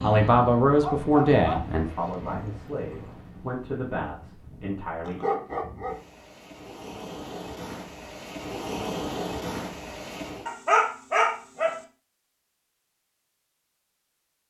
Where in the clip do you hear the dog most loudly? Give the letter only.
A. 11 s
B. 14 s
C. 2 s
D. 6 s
A.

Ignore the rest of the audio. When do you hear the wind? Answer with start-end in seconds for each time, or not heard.
0.0-10.5.